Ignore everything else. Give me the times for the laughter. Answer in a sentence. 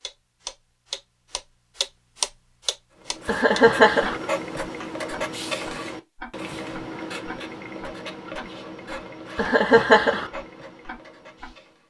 The laughter can be heard from 3.2 to 4.2 s and from 9.3 to 10.3 s.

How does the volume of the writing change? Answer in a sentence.
The loudness of the writing goes down.